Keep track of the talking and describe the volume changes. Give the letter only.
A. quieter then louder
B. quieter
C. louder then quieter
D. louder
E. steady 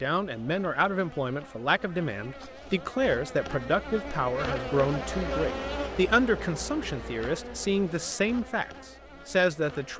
E.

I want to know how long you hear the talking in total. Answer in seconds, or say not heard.
10 s.